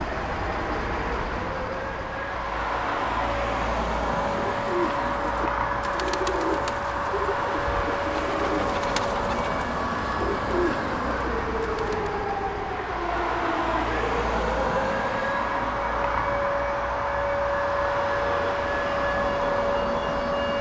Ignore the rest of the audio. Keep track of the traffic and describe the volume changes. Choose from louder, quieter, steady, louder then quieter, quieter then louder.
steady.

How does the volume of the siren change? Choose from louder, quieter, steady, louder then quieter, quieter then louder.
louder.